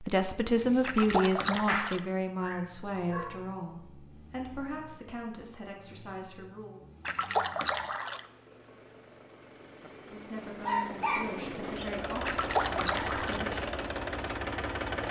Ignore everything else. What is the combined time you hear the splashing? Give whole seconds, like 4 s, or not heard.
4 s.